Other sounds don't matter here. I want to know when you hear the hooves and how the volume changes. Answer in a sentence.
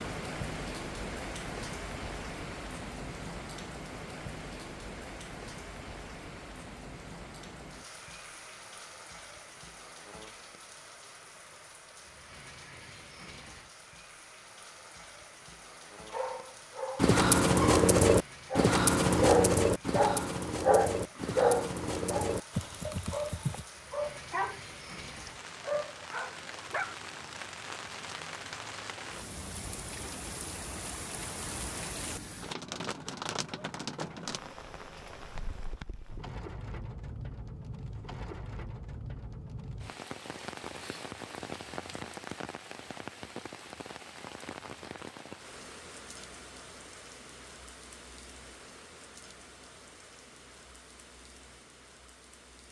You can hear the hooves from 16.9 to 23.6 s, getting quieter.